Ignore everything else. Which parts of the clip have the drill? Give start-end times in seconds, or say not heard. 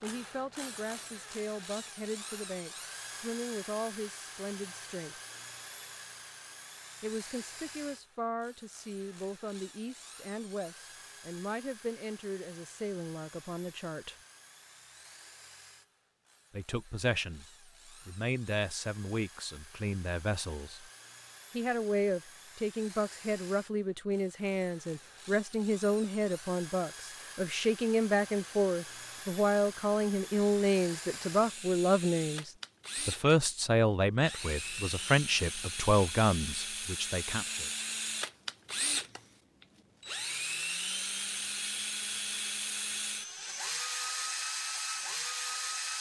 0.0-45.9.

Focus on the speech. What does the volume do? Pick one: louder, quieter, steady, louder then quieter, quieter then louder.
louder.